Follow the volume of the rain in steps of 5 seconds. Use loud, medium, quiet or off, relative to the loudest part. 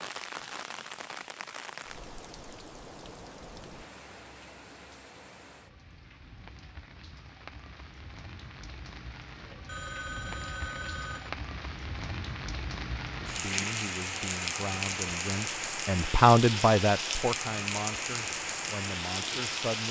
medium, quiet, loud, loud.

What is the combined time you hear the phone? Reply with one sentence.
You can hear the phone for 2 seconds altogether.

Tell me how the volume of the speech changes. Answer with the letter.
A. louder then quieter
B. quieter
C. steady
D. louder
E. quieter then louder
A.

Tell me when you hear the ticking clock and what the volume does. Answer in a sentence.
You can't hear the ticking clock here.